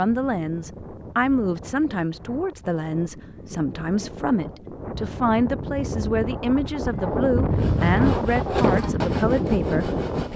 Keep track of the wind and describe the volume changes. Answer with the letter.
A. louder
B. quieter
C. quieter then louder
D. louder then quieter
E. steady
A.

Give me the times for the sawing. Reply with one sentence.
You can hear the sawing from 7.5 to 10.3 s.